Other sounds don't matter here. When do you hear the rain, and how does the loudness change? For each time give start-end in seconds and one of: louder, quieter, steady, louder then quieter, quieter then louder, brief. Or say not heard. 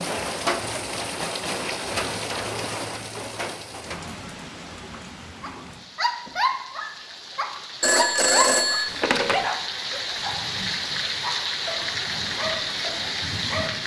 0.0-13.8 quieter then louder.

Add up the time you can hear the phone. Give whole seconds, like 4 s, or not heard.
2 s.